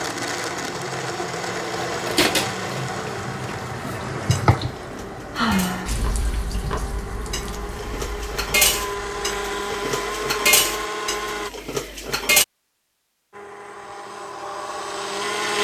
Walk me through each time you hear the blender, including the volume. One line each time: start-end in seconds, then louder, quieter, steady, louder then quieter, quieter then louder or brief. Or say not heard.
0.0-11.5 quieter then louder
13.3-15.5 brief.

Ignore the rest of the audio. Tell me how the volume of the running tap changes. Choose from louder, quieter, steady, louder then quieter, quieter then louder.
louder then quieter.